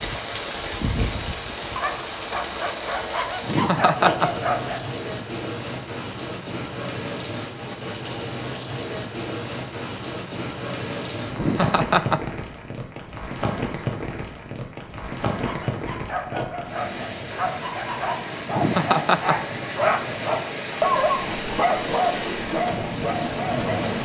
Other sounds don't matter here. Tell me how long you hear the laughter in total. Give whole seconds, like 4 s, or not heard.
3 s.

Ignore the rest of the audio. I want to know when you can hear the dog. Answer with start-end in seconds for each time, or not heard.
0.0-4.9, 15.4-23.8.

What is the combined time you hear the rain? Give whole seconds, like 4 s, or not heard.
24 s.